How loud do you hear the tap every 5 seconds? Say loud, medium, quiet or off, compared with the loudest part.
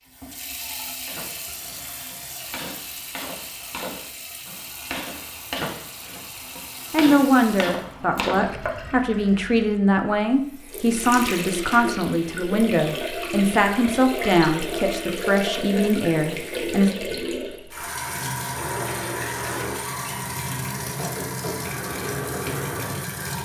medium, quiet, loud, loud, loud.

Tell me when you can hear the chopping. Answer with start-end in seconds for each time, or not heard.
1.1-8.9.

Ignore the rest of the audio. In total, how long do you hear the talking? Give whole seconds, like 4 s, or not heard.
10 s.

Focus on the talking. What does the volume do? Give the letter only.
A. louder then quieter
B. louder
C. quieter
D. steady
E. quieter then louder
D.